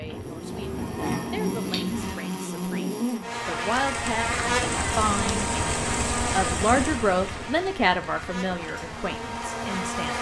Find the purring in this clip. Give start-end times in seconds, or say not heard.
0.0-2.1.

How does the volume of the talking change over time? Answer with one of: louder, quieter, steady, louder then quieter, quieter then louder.
louder then quieter.